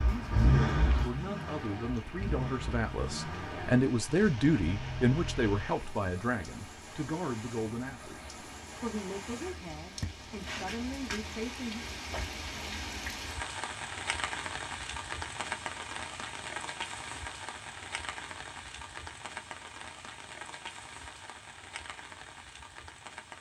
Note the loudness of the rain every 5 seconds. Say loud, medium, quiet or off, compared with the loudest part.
medium, medium, loud, loud, medium.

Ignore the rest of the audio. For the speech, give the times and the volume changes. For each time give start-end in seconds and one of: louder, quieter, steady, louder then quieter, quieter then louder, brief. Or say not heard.
0.1-11.8 louder then quieter.